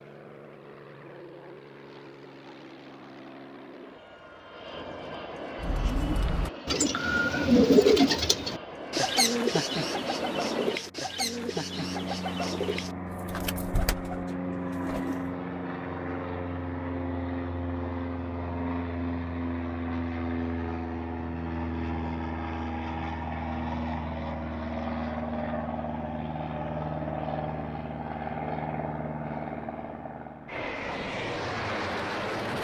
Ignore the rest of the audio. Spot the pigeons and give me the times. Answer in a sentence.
The pigeons can be heard from 5.5 to 15.2 s.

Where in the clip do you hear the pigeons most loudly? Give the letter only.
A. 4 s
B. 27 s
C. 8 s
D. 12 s
C.